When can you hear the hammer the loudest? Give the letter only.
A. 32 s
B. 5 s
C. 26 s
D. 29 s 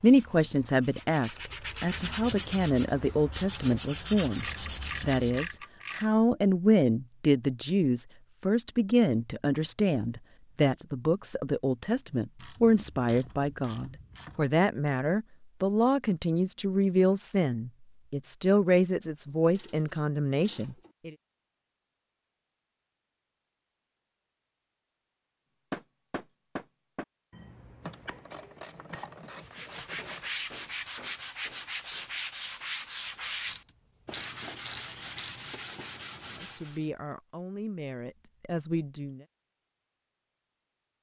C.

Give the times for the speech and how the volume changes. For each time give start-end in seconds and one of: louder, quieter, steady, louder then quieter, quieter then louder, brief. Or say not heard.
0.0-21.1 steady
36.4-39.2 brief.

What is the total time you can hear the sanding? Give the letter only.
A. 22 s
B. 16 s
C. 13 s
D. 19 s
C.